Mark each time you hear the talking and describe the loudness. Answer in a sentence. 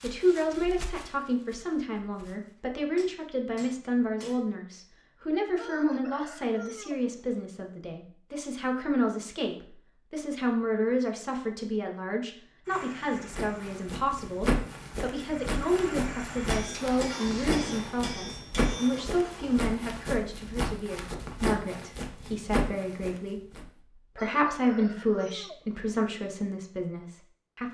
You can hear the talking from 0.0 to 27.6 s, at a steady volume.